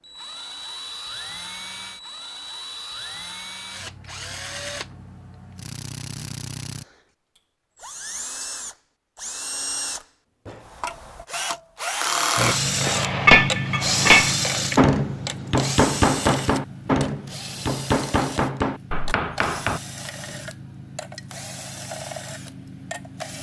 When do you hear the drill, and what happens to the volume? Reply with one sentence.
The drill can be heard from 0.0 to 23.3 s, getting louder then quieter.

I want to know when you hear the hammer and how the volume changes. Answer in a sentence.
You can hear the hammer from 12.3 to 19.8 s, getting quieter.